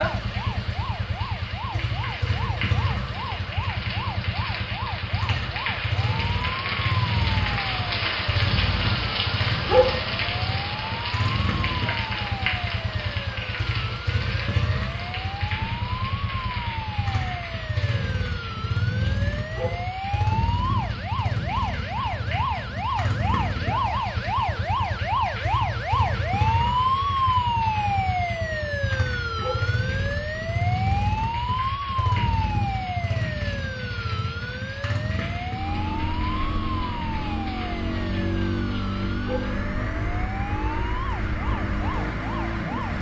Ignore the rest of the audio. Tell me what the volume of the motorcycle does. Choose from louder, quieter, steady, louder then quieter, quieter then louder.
steady.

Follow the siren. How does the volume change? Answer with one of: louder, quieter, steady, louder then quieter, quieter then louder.
louder then quieter.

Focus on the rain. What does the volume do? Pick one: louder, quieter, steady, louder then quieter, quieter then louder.
quieter.